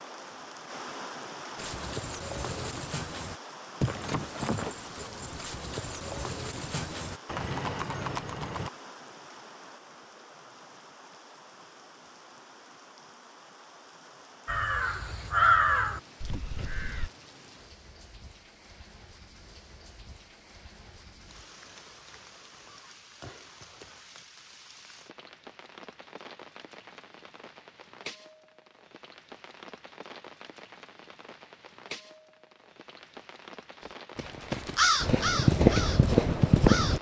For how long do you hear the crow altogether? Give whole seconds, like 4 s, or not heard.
6 s.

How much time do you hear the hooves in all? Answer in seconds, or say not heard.
9 s.